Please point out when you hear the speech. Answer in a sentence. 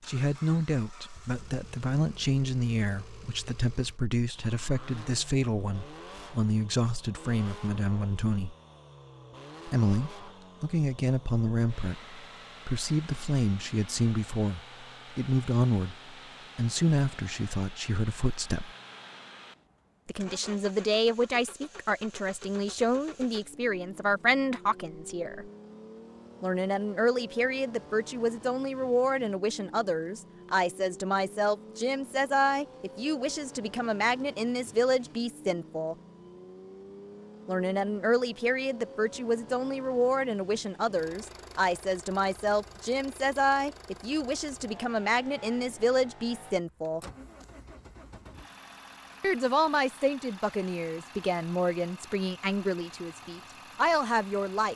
The speech can be heard from 0.1 to 8.6 s, from 9.7 to 18.7 s, from 20.1 to 25.5 s, from 26.4 to 36.0 s, from 37.5 to 47.0 s and from 49.2 to 54.7 s.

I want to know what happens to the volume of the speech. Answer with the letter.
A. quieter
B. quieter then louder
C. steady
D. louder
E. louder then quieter
C.